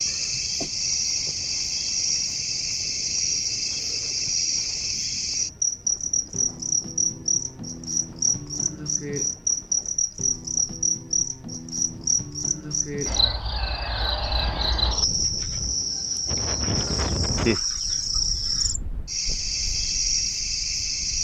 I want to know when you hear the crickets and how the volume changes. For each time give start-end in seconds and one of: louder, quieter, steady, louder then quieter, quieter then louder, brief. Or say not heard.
0.0-21.1 steady.